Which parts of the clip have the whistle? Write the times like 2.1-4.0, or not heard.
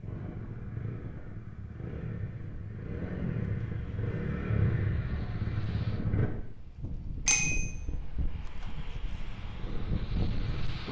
not heard.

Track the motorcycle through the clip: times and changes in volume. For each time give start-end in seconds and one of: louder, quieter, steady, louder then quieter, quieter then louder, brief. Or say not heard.
0.0-6.3 louder
9.1-10.8 brief.